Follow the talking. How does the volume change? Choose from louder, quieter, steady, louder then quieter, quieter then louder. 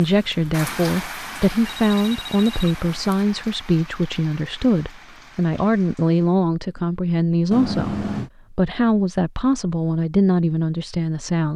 steady.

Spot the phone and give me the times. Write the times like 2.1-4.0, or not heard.
1.6-3.2, 7.5-8.3.